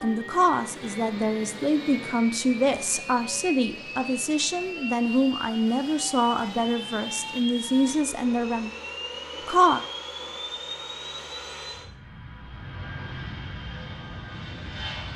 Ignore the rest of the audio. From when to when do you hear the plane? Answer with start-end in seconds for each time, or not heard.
0.0-15.1.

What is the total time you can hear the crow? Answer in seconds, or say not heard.
not heard.